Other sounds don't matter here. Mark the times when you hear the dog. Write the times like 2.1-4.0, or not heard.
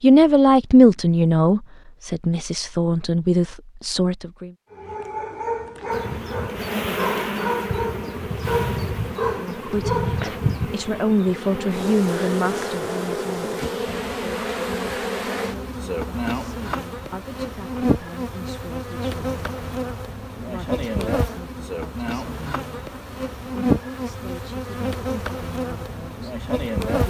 4.7-10.5.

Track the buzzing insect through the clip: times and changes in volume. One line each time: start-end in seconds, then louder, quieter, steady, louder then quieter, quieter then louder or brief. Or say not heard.
5.9-27.0 steady.